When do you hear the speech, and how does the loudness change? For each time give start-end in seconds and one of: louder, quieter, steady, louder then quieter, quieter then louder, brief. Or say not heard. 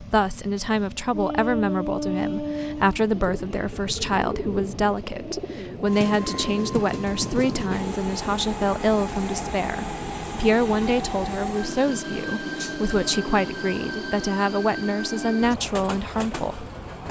0.0-16.6 steady.